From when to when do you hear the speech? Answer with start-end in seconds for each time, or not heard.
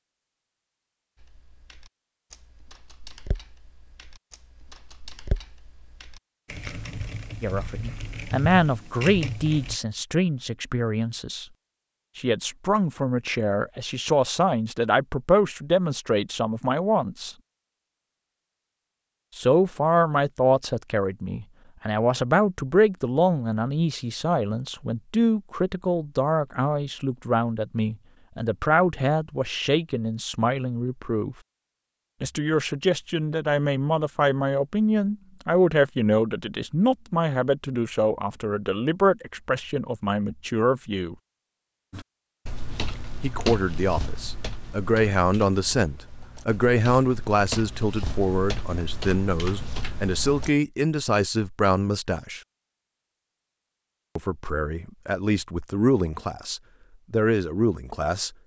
7.4-11.4, 12.2-17.4, 19.4-31.4, 32.2-41.1, 43.2-52.4, 54.1-58.3.